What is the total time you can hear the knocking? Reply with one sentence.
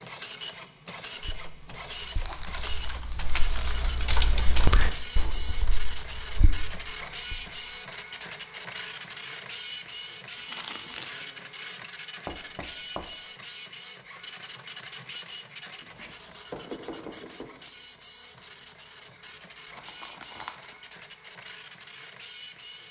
You can hear the knocking for 3 seconds altogether.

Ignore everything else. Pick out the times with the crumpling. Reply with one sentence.
The crumpling can be heard from 2.1 to 4.0 s, from 10.3 to 11.2 s and from 19.8 to 20.8 s.